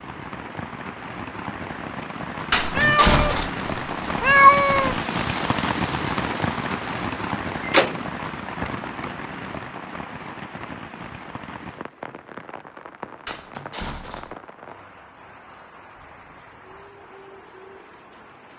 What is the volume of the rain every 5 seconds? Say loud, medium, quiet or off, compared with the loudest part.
loud, loud, medium, quiet.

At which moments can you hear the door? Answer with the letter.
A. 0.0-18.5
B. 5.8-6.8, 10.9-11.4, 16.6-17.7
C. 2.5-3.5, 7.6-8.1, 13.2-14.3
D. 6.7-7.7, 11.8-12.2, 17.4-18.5
C.